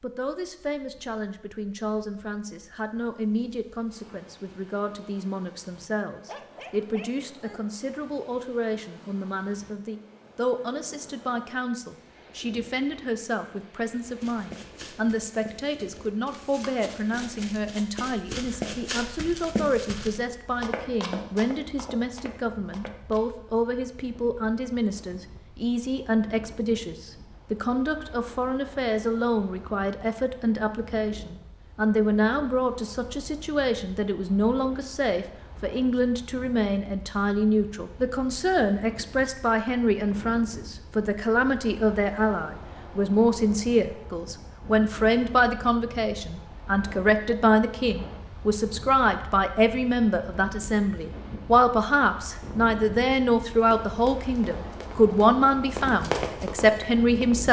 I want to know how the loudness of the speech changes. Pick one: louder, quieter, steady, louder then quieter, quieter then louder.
louder.